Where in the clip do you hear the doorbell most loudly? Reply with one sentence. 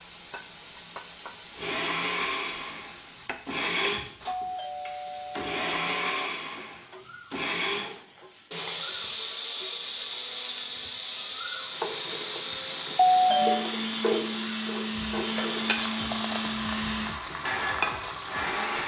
The loudest moment of the doorbell is at 13 seconds.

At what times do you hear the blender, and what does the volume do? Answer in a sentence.
You can hear the blender from 1.6 to 18.8 s, at a steady volume.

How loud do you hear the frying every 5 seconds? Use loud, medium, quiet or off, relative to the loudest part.
quiet, quiet, loud, loud.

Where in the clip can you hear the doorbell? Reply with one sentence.
The doorbell can be heard from 4.2 to 6.2 s and from 12.9 to 13.7 s.